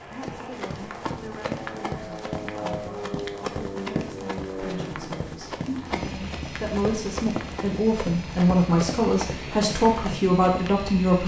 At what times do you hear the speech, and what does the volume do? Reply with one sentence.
You can hear the speech from 0.1 to 11.2 s, getting louder.